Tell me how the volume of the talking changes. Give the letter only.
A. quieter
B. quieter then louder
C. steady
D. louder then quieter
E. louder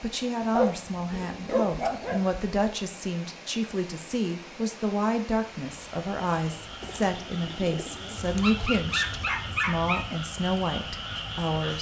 C.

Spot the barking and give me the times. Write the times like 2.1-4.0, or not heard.
0.5-2.4, 8.2-10.1.